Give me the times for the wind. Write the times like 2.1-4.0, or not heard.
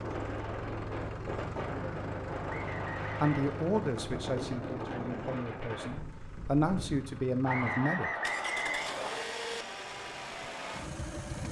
0.0-7.0.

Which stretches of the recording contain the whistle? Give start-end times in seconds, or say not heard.
2.5-3.5, 7.5-9.3.